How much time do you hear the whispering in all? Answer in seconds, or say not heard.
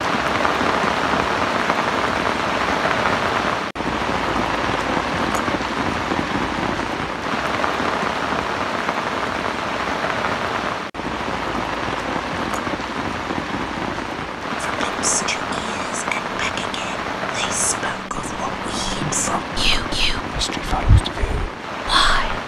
8 s.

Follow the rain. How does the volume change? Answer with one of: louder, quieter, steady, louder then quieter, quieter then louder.
quieter.